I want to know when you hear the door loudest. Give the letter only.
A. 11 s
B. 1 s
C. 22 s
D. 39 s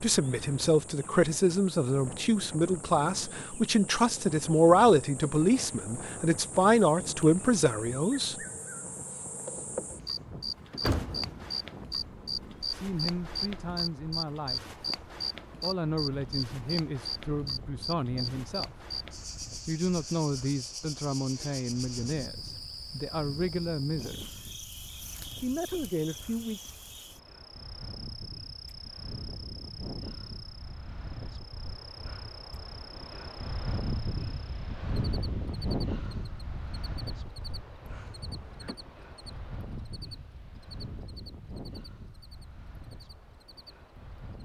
A.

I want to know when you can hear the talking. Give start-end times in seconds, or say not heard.
0.0-8.3, 12.7-14.8, 15.6-18.8, 19.6-24.4, 25.4-26.6.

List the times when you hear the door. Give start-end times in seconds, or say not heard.
9.9-11.4, 37.8-38.8.